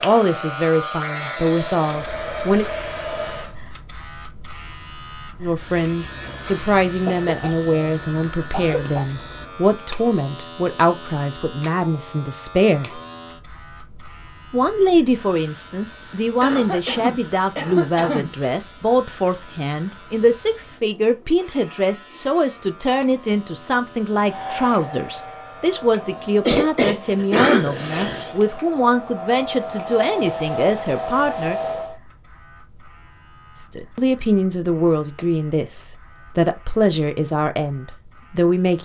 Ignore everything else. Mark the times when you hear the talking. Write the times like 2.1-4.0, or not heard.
0.0-2.6, 5.4-13.0, 14.5-31.6, 33.5-38.8.